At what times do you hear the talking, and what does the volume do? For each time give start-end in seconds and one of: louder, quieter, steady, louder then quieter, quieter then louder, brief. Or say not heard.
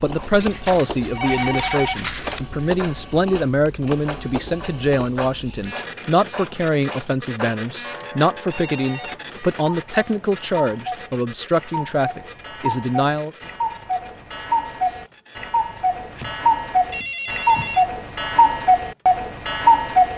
0.0-13.3 steady.